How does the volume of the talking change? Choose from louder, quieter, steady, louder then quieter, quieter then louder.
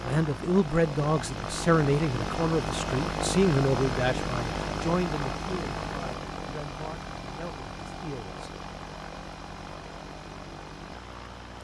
quieter.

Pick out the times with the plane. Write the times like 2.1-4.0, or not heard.
0.0-11.5.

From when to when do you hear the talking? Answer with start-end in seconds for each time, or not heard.
0.0-8.5.